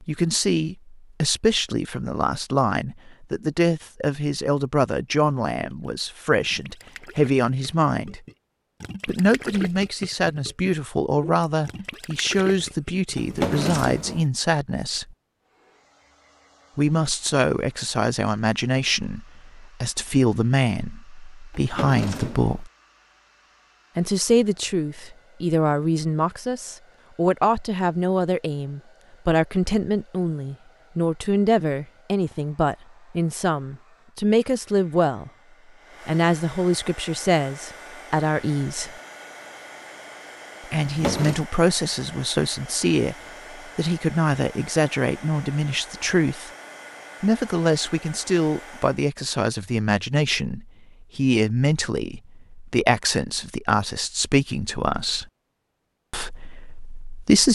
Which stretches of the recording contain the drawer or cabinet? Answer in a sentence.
The drawer or cabinet can be heard from 13.2 to 14.2 s, from 21.5 to 22.6 s and from 40.8 to 41.5 s.